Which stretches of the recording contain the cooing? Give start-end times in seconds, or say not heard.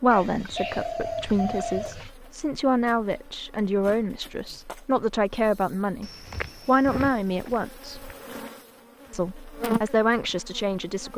0.1-2.1.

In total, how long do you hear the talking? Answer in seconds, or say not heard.
10 s.